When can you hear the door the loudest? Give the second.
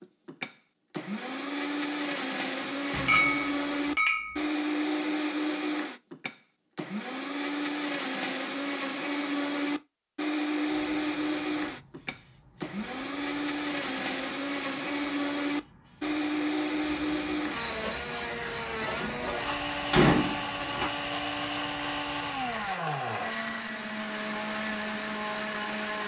20 s.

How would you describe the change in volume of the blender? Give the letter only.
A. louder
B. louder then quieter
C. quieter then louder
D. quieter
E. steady
E.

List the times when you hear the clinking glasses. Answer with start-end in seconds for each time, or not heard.
3.0-4.5.